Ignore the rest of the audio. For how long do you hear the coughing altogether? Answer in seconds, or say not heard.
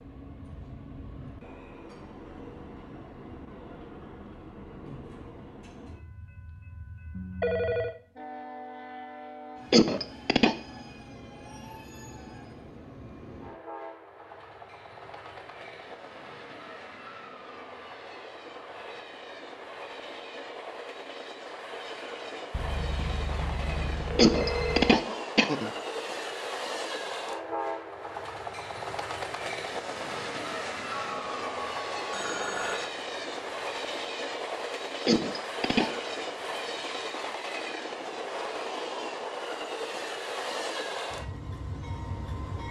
3 s.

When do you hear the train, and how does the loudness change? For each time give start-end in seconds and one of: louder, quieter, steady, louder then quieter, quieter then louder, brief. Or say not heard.
0.0-42.6 louder.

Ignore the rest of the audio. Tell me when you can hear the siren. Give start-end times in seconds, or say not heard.
not heard.